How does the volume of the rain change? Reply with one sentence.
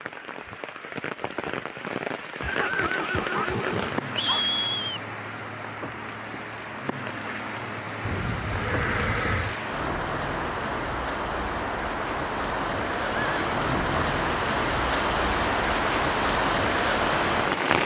The volume of the rain goes up.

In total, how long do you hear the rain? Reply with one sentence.
You can hear the rain for 18 seconds altogether.